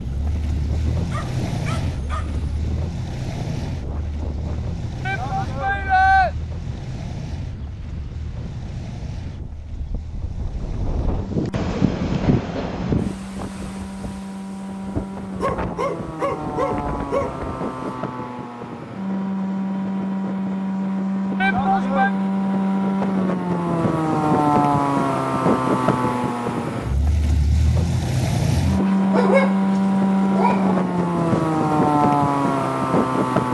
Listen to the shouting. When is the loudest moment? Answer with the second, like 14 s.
6 s.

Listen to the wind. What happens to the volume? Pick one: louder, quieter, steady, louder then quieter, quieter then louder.
louder then quieter.